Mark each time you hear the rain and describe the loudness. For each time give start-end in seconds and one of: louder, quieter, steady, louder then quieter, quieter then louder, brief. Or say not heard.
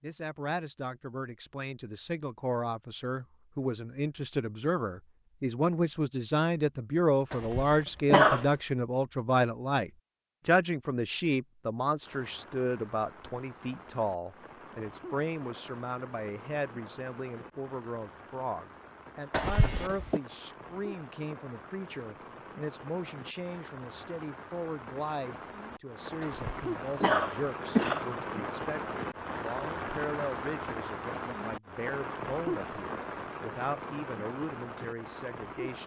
12.0-35.8 louder.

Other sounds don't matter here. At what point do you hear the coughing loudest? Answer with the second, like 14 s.
8 s.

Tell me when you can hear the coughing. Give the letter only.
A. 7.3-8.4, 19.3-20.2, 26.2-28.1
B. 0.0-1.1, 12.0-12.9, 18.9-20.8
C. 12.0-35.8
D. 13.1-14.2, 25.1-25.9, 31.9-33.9
A.